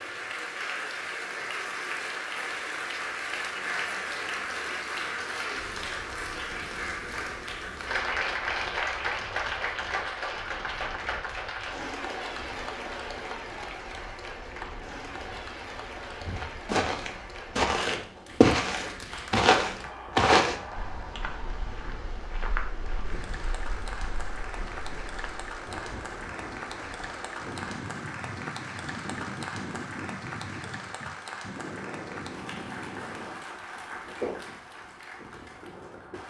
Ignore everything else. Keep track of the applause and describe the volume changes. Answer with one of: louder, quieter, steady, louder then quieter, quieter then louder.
quieter.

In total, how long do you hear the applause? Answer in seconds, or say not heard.
36 s.